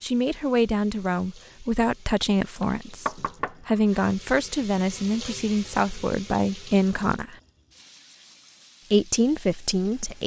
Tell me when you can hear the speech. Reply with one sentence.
You can hear the speech from 0.0 to 7.3 s and from 8.9 to 10.2 s.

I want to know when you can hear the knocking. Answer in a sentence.
The knocking can be heard from 2.6 to 4.0 s.